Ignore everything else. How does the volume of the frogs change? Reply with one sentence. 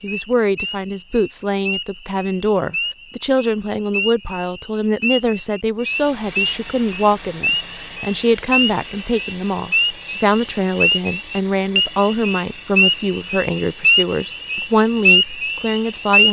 The volume of the frogs goes up.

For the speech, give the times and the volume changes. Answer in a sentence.
The speech can be heard from 0.0 to 16.2 s, at a steady volume.